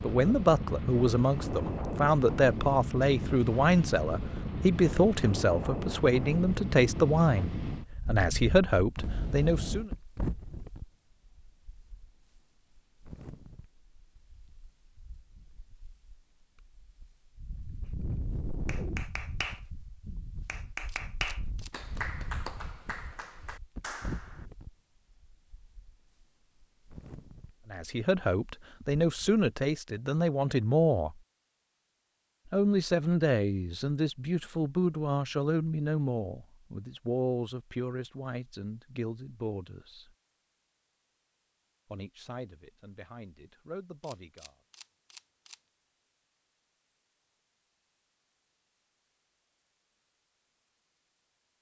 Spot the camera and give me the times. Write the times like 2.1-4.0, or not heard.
8.9-9.9, 20.9-21.7, 44.0-45.5.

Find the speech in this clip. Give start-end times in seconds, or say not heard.
0.0-9.9, 27.6-31.1, 32.5-40.1, 41.9-44.5.